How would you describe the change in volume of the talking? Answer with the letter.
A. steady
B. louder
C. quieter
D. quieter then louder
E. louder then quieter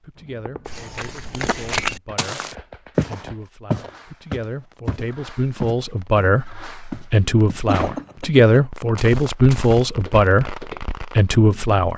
B.